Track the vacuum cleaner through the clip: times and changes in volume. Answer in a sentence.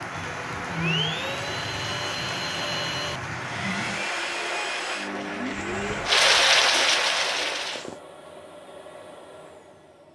The vacuum cleaner can be heard from 0.0 to 10.0 s, getting quieter.